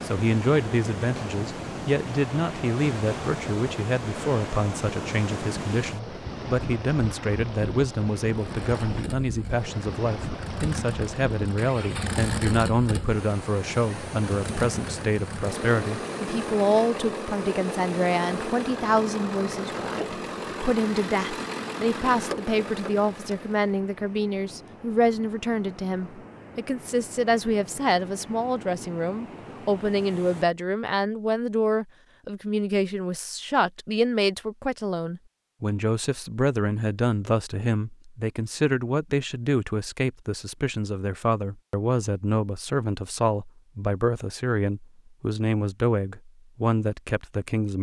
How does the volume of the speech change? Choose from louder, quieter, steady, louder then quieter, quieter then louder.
steady.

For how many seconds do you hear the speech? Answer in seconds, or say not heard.
48 s.